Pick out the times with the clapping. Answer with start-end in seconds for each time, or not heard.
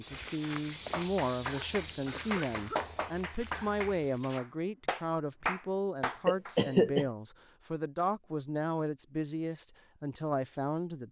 0.9-6.5.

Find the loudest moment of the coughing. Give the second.
7 s.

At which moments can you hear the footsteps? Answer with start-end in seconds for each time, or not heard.
0.0-4.4.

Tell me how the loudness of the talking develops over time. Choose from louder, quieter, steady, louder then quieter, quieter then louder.
steady.